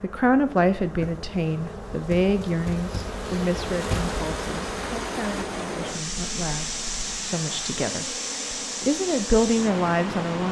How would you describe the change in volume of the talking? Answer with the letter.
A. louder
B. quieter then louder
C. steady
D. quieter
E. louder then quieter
B.